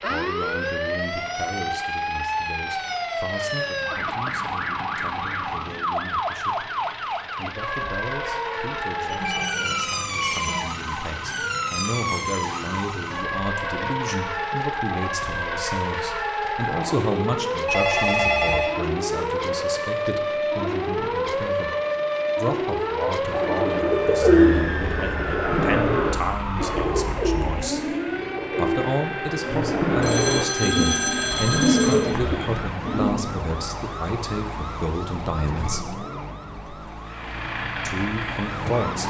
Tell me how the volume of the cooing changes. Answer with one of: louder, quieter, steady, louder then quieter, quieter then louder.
quieter then louder.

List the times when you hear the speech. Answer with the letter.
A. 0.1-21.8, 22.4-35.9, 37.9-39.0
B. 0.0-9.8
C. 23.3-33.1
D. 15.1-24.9
A.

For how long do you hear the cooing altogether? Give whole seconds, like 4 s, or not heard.
10 s.